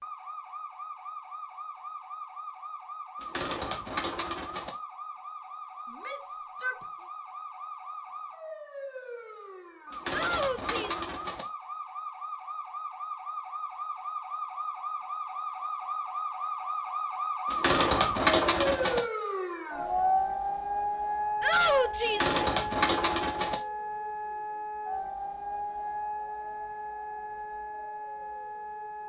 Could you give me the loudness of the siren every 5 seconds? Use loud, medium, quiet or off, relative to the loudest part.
medium, medium, medium, loud, loud, medium.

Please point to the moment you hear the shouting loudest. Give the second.
22 s.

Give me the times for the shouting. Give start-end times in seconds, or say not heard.
5.9-6.8, 10.1-11.1, 21.4-22.4.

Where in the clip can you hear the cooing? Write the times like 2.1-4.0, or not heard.
3.2-4.7, 9.9-11.4, 17.5-19.0, 22.1-23.6.